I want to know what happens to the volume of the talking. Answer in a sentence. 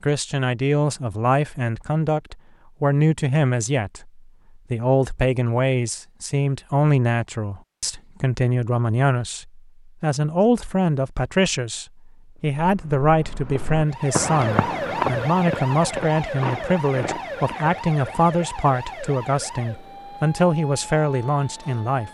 The loudness of the talking stays about the same.